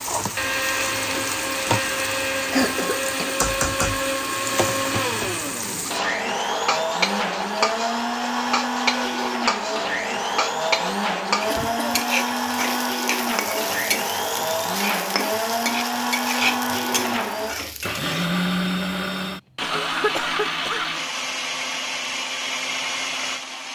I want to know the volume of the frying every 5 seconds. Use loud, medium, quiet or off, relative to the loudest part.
loud, loud, loud, loud, off.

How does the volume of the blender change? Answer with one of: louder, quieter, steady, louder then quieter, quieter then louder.
steady.